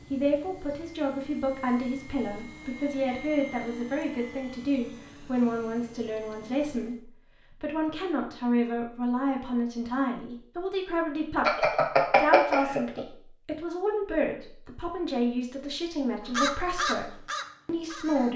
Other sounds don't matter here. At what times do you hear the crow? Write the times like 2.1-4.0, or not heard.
16.2-18.3.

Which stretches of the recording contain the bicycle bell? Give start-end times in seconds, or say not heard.
11.4-13.1.